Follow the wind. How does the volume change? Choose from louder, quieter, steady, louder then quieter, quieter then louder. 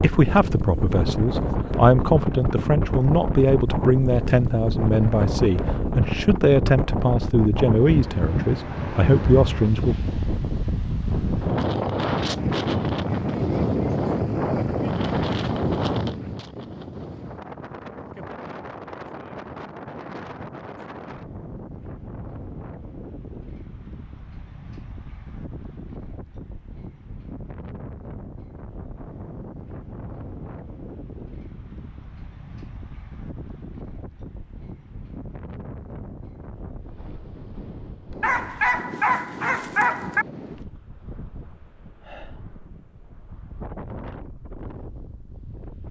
quieter.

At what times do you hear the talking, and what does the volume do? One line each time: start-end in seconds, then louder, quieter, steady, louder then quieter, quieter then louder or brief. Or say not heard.
0.0-9.9 steady.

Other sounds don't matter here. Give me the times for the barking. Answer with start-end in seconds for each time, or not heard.
38.2-40.2.